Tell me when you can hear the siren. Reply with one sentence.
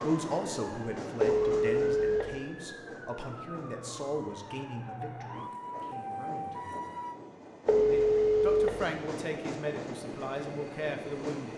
The siren can be heard from 0.1 to 7.2 s.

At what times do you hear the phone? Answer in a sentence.
You can hear the phone from 1.2 to 2.4 s and from 7.7 to 8.8 s.